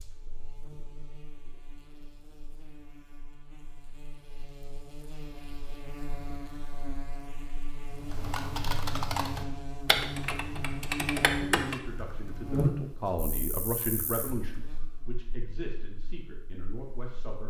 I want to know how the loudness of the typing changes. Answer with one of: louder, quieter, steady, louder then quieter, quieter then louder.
quieter.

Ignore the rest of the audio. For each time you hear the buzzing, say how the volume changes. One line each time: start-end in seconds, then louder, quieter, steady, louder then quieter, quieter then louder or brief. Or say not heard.
0.0-17.4 louder then quieter.